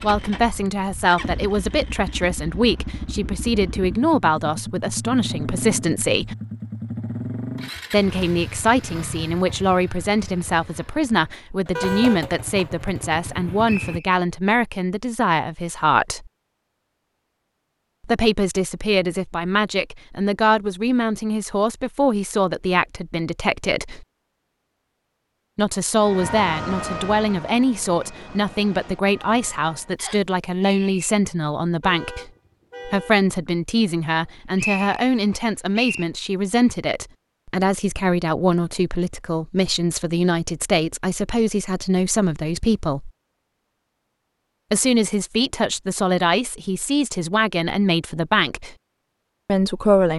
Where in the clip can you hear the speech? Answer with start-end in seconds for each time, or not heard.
0.0-6.3, 7.9-16.3, 18.0-24.1, 25.6-43.1, 44.7-48.8, 49.5-50.1.